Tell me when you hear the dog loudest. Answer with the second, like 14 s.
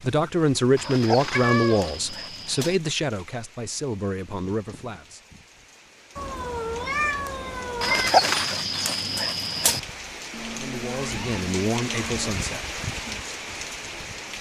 8 s.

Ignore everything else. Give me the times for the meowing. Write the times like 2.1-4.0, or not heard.
1.3-1.9, 6.2-8.1, 10.3-12.3.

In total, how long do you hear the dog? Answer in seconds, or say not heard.
4 s.